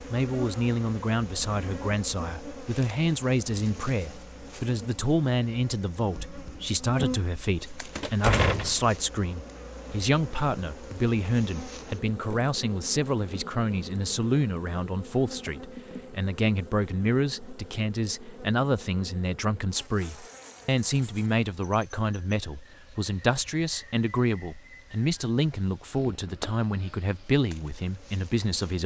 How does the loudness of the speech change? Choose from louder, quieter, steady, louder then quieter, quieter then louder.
steady.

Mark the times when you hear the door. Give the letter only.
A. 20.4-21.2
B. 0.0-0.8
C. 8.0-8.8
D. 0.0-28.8
C.